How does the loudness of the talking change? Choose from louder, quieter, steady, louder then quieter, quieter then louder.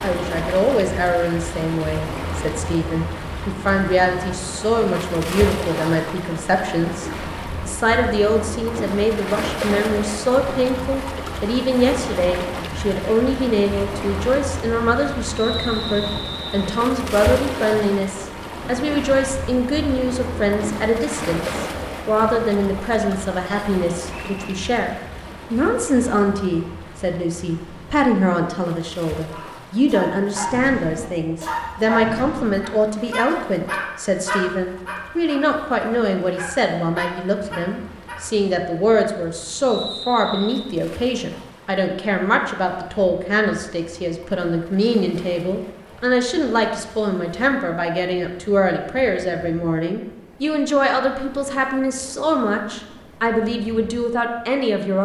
steady.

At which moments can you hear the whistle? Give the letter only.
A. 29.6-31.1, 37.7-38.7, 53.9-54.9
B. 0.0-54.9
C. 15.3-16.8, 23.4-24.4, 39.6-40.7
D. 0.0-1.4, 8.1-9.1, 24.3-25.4
C.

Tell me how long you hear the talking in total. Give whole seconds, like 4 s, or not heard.
55 s.